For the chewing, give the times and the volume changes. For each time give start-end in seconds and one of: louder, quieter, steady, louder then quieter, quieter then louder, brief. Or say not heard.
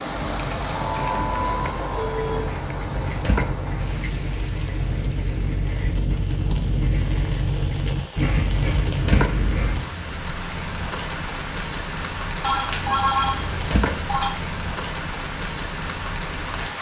0.0-9.9 louder.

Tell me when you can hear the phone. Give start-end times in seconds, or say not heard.
0.8-2.5, 12.4-14.3.